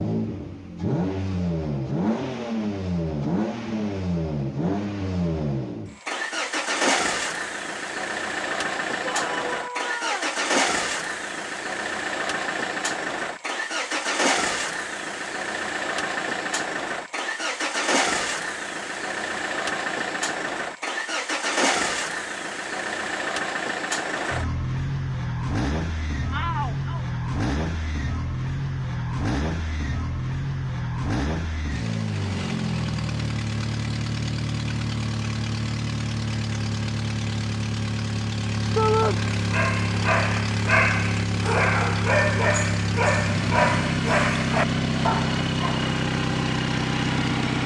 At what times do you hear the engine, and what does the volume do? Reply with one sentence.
The engine can be heard from 0.0 to 47.6 s, at a steady volume.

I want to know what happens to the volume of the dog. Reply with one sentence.
The loudness of the dog stays about the same.